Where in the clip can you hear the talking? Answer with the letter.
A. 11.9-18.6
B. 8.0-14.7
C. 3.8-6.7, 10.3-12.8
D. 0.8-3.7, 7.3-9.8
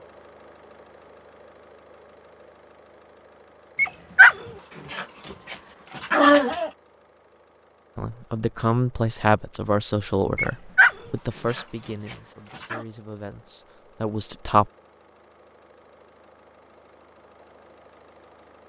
B.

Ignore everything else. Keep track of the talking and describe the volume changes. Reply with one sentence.
The volume of the talking goes down, then up.